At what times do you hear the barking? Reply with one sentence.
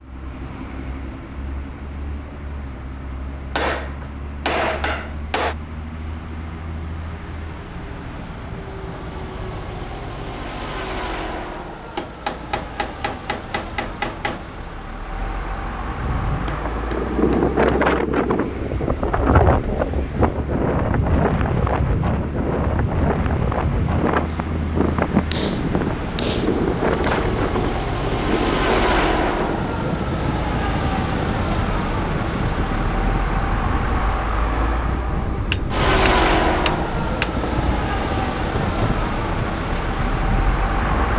You can't hear the barking here.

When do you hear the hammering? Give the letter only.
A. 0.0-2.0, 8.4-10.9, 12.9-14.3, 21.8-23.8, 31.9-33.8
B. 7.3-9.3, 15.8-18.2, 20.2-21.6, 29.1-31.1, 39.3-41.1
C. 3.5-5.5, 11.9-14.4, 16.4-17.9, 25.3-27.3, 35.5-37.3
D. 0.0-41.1
C.